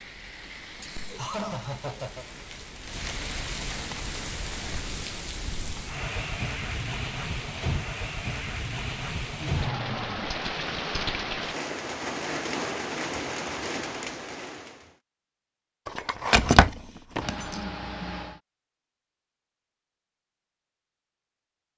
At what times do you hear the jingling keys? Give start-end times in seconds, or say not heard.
15.8-17.6.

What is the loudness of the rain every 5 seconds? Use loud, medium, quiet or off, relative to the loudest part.
medium, loud, loud, off, off.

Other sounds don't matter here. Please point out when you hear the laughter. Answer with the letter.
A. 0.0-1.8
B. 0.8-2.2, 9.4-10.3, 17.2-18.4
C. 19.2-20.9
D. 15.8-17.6
B.